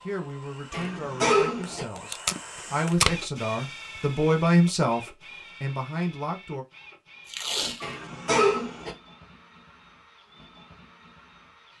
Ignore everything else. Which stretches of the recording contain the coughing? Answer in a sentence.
The coughing can be heard from 0.7 to 1.9 s and from 7.8 to 8.9 s.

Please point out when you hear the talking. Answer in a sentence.
You can hear the talking from 0.0 to 6.7 s.